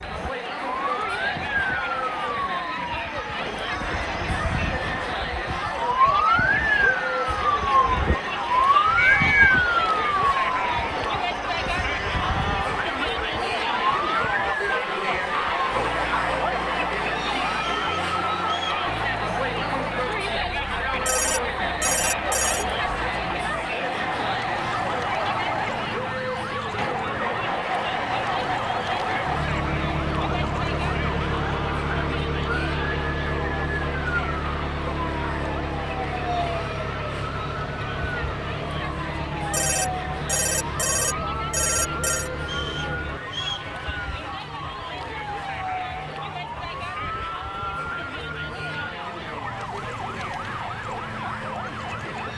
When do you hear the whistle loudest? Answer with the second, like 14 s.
9 s.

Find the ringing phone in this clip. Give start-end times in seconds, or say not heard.
21.1-22.6, 39.5-42.3.